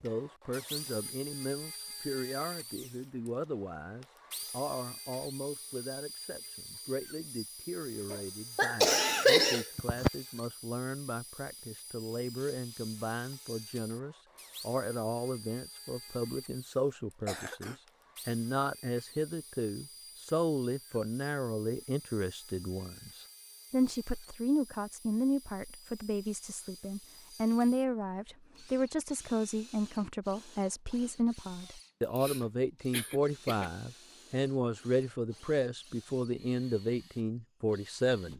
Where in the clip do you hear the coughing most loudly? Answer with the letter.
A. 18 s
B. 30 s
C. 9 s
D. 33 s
C.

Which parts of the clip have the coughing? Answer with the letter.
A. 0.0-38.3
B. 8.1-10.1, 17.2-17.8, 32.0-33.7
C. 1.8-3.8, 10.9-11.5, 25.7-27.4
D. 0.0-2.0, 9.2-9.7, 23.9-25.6
B.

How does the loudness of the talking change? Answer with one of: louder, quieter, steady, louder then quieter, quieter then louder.
louder.